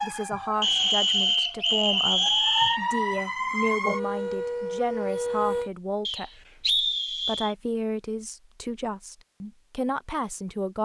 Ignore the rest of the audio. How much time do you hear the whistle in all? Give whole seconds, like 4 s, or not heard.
4 s.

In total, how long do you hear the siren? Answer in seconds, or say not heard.
6 s.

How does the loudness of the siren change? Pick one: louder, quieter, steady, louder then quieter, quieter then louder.
louder.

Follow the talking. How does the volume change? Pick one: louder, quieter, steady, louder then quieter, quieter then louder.
steady.